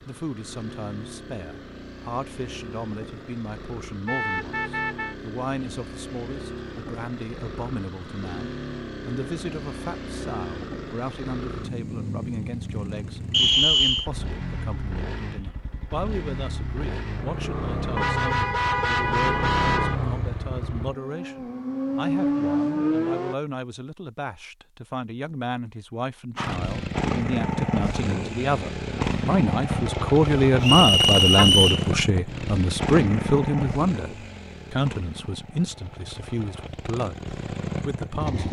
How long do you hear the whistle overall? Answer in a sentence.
The whistle can be heard for 2 seconds in total.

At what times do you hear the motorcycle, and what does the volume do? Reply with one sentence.
The motorcycle can be heard from 0.0 to 23.4 s, getting louder; and from 26.4 to 38.4 s, getting quieter.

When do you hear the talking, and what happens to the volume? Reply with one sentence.
You can hear the talking from 0.0 to 38.4 s, getting louder.